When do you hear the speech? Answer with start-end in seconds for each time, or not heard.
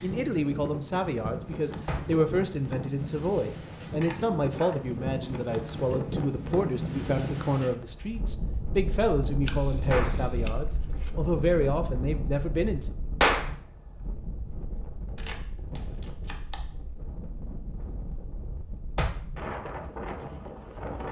0.0-12.9.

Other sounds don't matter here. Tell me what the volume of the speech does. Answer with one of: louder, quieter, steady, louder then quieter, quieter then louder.
steady.